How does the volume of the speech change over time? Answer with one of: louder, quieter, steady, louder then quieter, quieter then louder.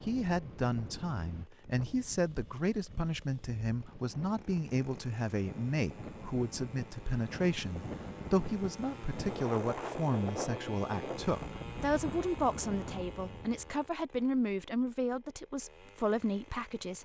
steady.